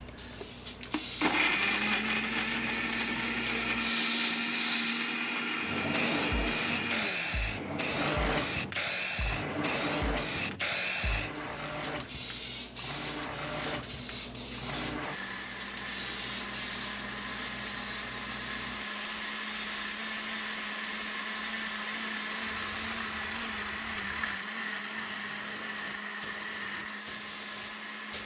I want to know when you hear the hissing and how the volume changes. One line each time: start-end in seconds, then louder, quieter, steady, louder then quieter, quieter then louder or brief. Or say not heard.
0.0-28.2 quieter.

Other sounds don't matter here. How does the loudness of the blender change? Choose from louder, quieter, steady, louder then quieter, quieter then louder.
quieter.